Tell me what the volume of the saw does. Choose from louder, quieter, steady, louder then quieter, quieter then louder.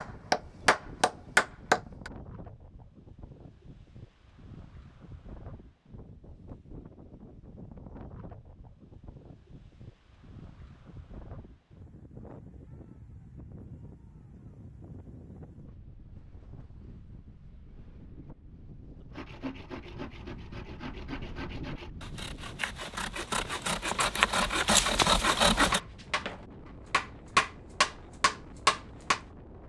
louder.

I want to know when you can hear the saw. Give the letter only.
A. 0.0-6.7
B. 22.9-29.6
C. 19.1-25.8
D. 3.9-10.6
C.